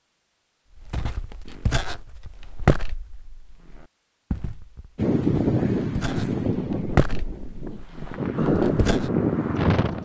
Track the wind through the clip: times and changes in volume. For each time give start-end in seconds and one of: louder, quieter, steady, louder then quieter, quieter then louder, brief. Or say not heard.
5.0-10.0 quieter then louder.